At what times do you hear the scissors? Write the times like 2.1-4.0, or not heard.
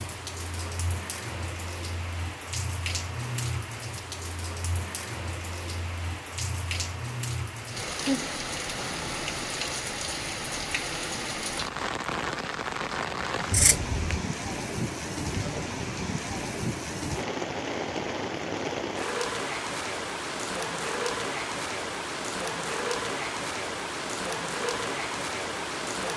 13.5-14.2.